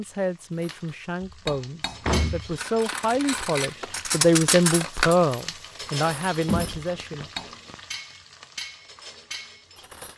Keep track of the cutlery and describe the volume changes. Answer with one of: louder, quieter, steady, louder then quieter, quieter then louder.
louder then quieter.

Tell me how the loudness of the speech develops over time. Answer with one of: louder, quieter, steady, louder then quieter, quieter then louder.
louder then quieter.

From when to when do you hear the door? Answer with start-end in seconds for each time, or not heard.
1.2-2.5, 6.5-7.8.